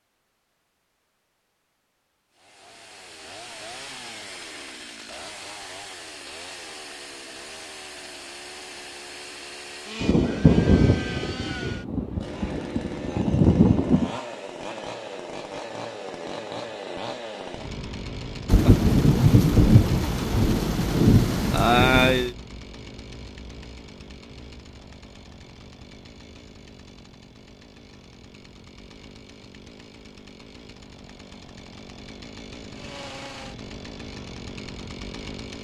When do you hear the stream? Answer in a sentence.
The stream can't be heard in this clip.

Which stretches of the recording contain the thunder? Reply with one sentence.
You can hear the thunder from 10.0 to 14.2 s and from 18.4 to 22.4 s.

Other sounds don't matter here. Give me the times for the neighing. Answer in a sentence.
The neighing can't be heard in this clip.